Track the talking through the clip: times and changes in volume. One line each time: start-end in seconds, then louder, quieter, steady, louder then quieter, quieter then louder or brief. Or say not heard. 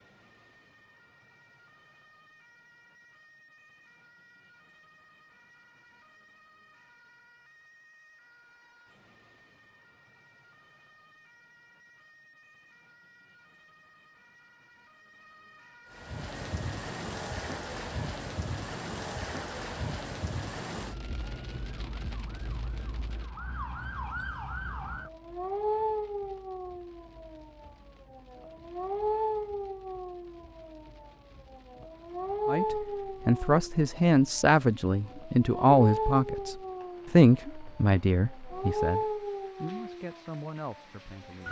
32.5-41.4 quieter.